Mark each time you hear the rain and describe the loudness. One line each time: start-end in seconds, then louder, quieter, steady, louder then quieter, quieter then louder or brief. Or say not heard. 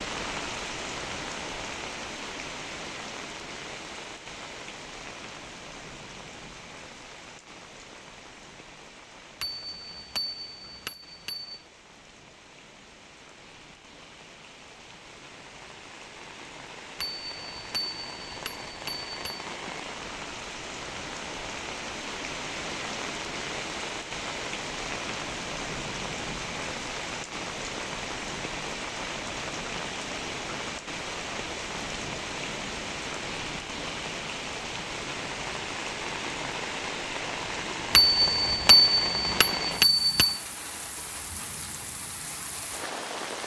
0.0-43.4 quieter then louder.